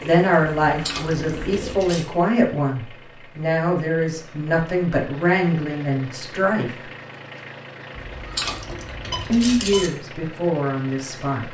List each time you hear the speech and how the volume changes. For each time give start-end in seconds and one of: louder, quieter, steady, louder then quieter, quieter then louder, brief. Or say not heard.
0.0-6.9 steady
9.3-11.4 brief.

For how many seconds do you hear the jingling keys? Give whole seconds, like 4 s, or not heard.
3 s.